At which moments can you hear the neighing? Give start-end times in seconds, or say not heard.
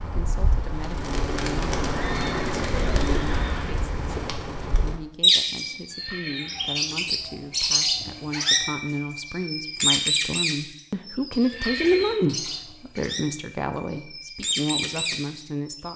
1.9-3.5, 5.9-6.8, 11.4-12.6.